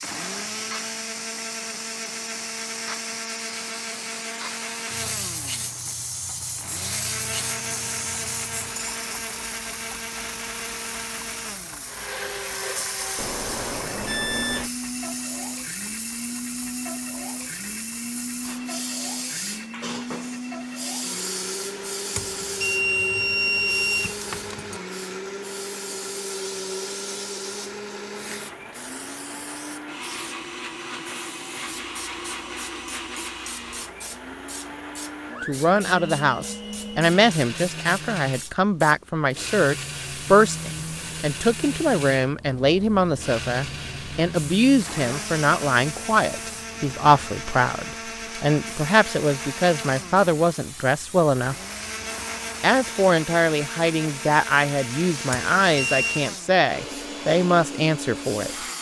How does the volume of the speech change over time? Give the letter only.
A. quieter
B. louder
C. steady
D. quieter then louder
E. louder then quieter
C.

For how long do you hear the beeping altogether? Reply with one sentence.
You can hear the beeping for 5 seconds altogether.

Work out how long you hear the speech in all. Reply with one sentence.
You can hear the speech for 22 seconds altogether.